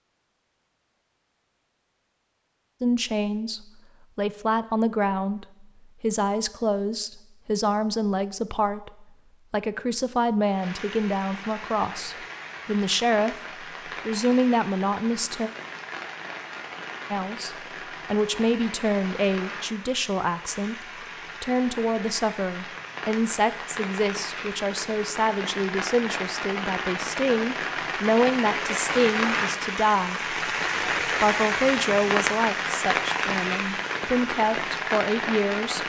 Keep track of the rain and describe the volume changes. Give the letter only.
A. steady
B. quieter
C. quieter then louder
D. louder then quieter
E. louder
E.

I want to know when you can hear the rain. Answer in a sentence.
The rain can be heard from 10.4 to 35.8 s.